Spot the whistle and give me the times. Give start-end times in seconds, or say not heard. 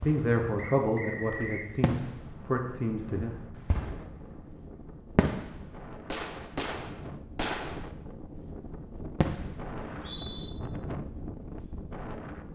0.6-1.7, 9.8-10.5.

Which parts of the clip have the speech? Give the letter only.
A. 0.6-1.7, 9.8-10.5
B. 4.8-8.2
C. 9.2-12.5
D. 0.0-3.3
D.